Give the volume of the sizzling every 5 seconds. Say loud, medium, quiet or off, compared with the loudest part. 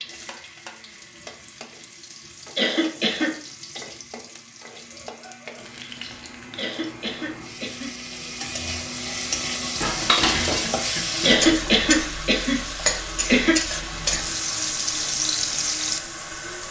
quiet, medium, loud, loud.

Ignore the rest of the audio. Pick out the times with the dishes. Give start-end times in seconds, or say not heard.
9.8-11.5.